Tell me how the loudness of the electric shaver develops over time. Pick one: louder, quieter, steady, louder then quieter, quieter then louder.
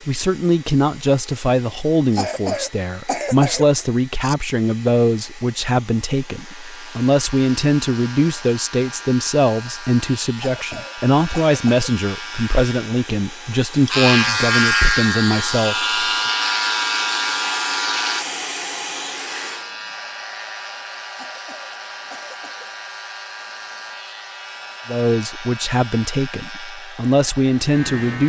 louder then quieter.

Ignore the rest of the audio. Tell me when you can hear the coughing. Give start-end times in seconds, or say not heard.
2.1-4.3, 10.3-11.9, 21.1-22.7.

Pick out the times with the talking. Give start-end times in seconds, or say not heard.
0.1-15.9, 24.9-28.2.